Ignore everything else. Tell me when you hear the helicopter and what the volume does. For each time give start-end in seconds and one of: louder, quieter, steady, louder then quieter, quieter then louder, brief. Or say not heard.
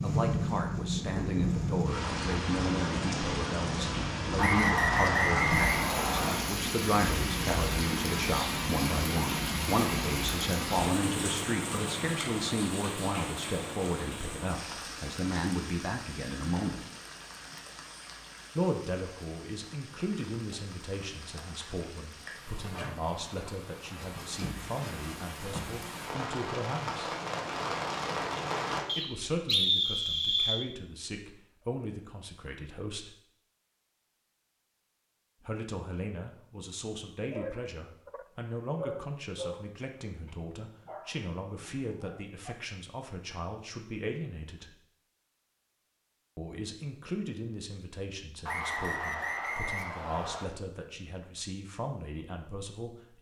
not heard.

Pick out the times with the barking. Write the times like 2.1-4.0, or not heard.
37.3-42.6.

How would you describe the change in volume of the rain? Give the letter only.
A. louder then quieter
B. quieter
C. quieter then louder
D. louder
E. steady
C.